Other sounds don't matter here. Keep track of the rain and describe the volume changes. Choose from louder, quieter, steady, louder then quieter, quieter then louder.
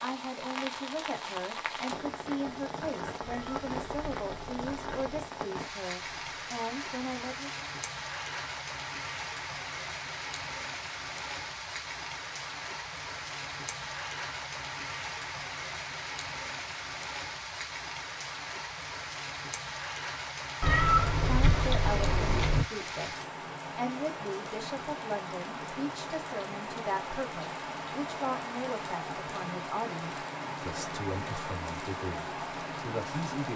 steady.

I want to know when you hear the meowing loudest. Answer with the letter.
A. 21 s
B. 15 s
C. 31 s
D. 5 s
A.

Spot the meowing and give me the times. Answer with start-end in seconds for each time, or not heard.
3.2-5.2, 20.6-22.6.